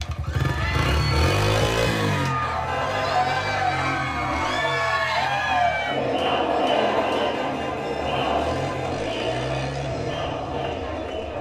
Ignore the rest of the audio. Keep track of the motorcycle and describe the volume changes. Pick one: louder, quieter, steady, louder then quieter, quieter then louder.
quieter then louder.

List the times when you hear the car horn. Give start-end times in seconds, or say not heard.
2.4-3.6, 6.5-9.0.